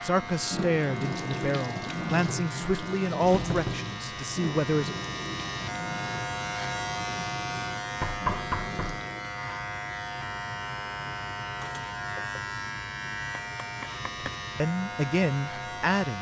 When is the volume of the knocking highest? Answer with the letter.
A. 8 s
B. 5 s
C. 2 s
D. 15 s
A.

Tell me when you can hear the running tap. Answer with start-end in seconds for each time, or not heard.
0.0-9.3.